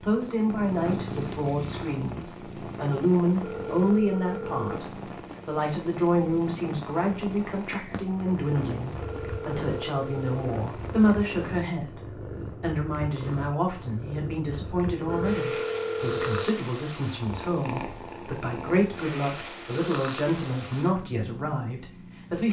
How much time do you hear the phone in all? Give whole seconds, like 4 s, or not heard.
4 s.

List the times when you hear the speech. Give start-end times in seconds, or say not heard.
0.0-22.4.